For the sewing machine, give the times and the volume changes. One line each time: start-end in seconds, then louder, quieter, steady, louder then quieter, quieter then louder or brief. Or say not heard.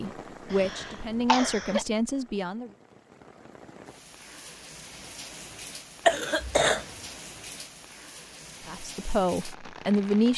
not heard.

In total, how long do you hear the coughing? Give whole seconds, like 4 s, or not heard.
2 s.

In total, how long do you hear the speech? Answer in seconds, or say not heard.
4 s.